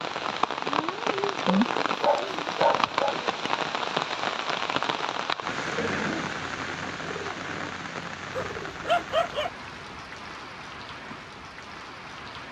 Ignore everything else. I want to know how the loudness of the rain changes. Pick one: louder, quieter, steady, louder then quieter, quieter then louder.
quieter.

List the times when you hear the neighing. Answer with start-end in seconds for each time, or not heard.
5.8-6.4.